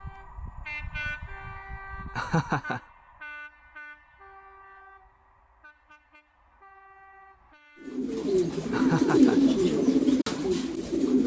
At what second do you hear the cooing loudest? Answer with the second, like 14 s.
9 s.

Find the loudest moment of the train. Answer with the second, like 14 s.
1 s.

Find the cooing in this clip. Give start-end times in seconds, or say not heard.
7.8-11.2.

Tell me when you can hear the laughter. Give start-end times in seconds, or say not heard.
2.1-2.8, 8.7-9.4.